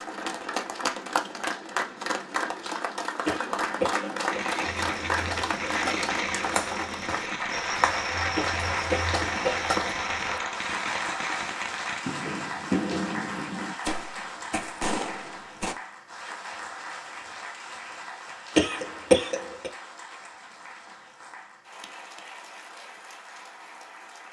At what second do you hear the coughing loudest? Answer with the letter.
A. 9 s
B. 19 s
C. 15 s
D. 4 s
B.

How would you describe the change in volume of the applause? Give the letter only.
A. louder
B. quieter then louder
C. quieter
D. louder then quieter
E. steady
C.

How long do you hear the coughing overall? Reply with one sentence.
You can hear the coughing for 4 seconds altogether.